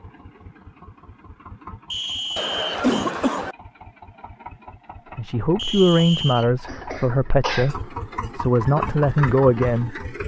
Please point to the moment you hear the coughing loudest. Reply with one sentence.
The volume of the coughing peaks at 3 seconds.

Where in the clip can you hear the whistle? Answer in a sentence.
The whistle can be heard from 1.9 to 2.9 s and from 5.5 to 6.5 s.